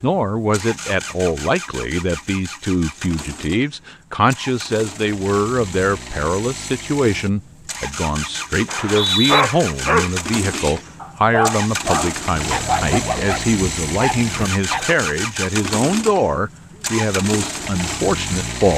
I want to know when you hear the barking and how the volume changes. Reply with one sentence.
You can hear the barking from 9.2 to 14.9 s, getting quieter.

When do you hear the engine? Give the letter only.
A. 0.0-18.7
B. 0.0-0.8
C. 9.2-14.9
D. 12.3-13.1
A.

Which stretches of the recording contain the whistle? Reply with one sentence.
The whistle can be heard from 8.7 to 9.4 s.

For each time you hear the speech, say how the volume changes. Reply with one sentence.
The speech can be heard from 0.0 to 18.7 s, at a steady volume.